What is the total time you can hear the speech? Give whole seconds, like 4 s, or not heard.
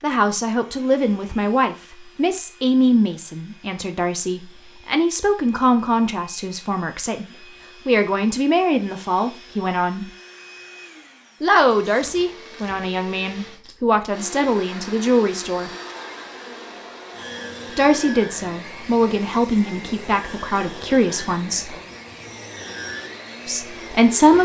19 s.